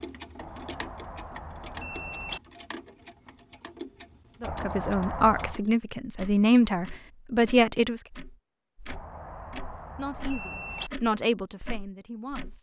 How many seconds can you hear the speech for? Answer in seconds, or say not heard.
6 s.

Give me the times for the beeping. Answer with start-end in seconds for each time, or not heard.
0.3-2.4, 4.4-5.6, 8.8-10.9.